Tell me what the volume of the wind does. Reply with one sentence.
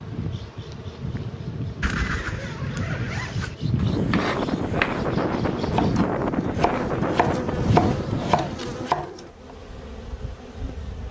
The volume of the wind goes up.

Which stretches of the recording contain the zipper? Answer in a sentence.
The zipper can be heard from 1.8 to 3.5 s.